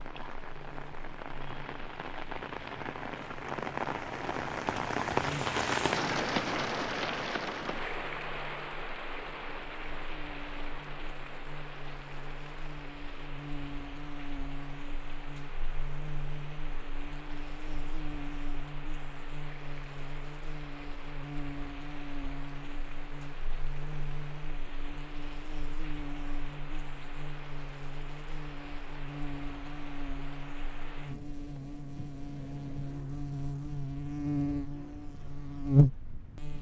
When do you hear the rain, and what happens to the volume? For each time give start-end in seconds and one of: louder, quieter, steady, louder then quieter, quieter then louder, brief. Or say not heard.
0.0-36.5 quieter.